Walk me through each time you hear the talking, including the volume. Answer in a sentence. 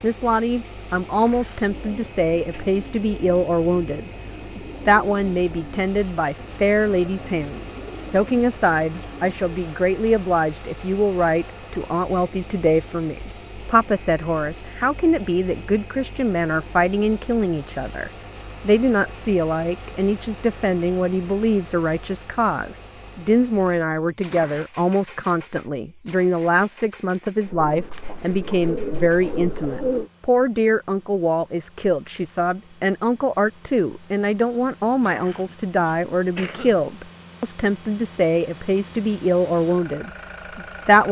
The talking can be heard from 0.0 to 41.0 s, at a steady volume.